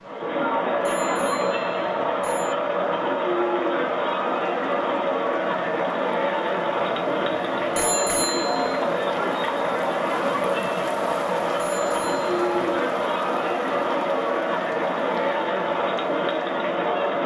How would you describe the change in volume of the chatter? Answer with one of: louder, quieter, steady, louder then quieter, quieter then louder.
steady.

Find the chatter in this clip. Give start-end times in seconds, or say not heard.
0.0-17.2.